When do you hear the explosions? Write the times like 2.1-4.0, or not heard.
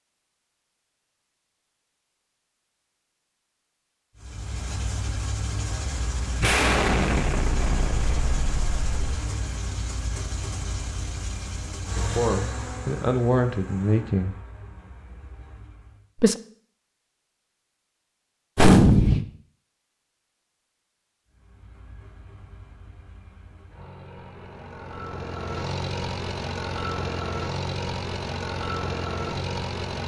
6.4-8.9, 18.6-19.2.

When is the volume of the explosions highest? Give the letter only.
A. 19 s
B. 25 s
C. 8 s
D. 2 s
A.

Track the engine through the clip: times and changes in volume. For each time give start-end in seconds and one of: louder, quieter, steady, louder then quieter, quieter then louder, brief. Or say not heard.
4.2-16.1 quieter
21.2-30.0 louder.